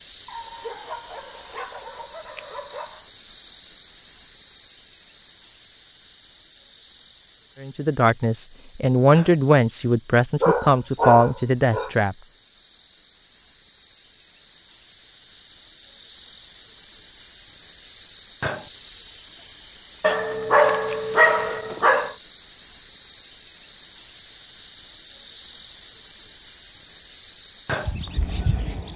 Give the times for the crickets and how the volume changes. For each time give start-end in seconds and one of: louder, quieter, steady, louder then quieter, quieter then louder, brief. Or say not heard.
0.0-28.9 quieter then louder.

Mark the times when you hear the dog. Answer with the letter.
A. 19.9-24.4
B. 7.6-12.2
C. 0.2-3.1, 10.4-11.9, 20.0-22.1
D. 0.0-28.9
C.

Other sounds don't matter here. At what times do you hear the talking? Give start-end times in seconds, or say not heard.
7.6-12.2.